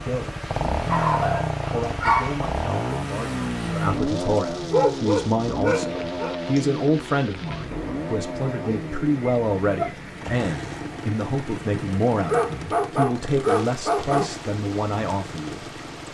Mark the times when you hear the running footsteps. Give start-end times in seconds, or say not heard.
not heard.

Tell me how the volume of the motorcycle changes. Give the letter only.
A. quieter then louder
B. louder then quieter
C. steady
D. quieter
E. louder
D.